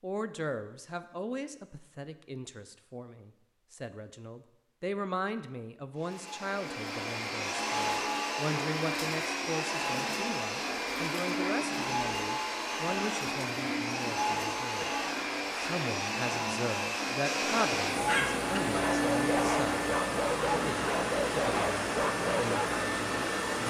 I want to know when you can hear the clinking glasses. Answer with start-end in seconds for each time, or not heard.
not heard.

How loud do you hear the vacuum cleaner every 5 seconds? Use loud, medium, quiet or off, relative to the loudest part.
off, loud, loud, loud, loud.